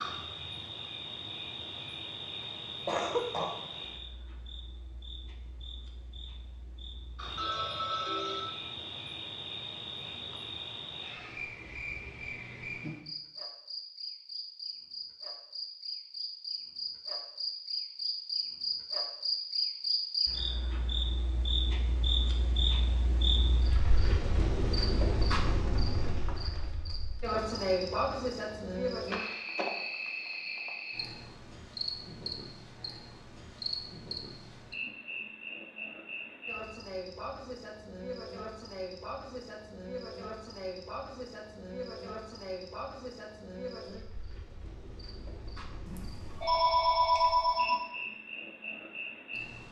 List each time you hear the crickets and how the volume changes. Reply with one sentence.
You can hear the crickets from 0.0 to 49.6 s, getting louder then quieter.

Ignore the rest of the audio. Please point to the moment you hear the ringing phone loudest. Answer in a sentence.
The volume of the ringing phone peaks at 47 seconds.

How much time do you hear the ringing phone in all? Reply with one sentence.
The ringing phone can be heard for 3 seconds in total.